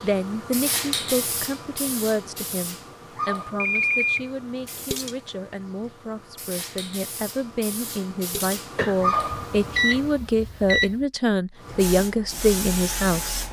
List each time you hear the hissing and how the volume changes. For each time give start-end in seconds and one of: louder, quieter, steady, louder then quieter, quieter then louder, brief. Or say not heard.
0.0-10.2 quieter then louder
11.6-13.4 brief.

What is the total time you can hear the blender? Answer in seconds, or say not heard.
not heard.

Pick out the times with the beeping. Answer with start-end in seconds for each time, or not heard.
3.6-4.3, 8.8-10.9.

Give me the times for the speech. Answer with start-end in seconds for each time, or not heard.
0.0-13.4.